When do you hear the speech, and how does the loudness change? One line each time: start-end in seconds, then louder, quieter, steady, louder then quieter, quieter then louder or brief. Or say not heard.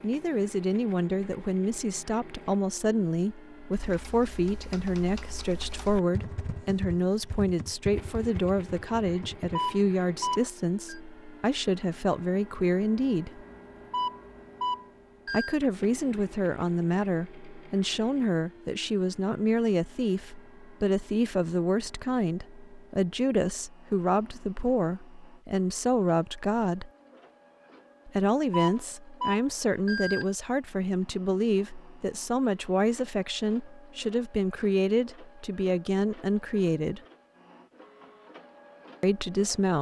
0.0-13.4 steady
15.3-26.9 steady
28.1-37.0 steady
39.0-39.7 brief.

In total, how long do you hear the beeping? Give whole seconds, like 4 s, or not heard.
5 s.